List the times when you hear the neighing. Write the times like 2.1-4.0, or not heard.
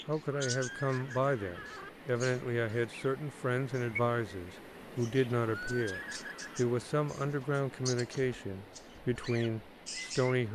0.3-1.9, 5.5-6.7.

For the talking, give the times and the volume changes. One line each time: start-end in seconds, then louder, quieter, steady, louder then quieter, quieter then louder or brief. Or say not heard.
0.1-10.5 steady.